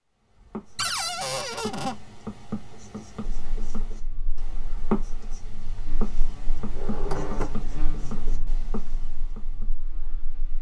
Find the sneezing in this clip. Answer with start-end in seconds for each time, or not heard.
not heard.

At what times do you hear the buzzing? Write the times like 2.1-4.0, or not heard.
3.5-10.5.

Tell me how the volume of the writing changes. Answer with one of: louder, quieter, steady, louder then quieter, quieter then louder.
louder then quieter.